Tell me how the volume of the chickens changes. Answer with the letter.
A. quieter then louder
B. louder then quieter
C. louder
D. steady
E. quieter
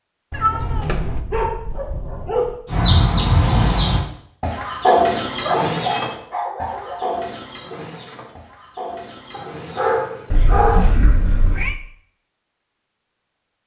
E.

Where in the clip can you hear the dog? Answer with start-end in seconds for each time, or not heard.
0.6-2.5, 5.4-7.0, 9.3-10.9.